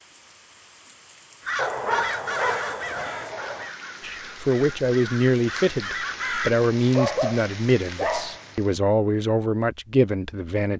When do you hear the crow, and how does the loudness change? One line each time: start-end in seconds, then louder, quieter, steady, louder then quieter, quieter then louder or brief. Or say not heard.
1.4-6.5 quieter then louder.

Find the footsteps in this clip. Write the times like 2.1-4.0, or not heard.
not heard.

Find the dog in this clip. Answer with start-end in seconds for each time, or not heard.
1.6-3.7, 7.0-8.8.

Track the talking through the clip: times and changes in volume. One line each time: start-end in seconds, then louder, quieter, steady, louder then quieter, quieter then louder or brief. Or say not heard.
4.0-10.7 steady.